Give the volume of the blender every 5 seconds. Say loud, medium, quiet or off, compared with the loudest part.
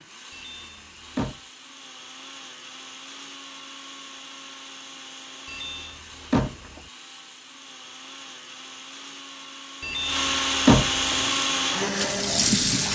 quiet, quiet, loud.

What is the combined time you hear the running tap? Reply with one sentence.
The running tap can be heard for 2 seconds in total.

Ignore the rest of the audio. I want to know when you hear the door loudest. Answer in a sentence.
The loudest moment of the door is at 11 seconds.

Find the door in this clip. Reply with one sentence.
You can hear the door from 0.3 to 1.4 s, from 5.5 to 6.8 s and from 9.8 to 11.2 s.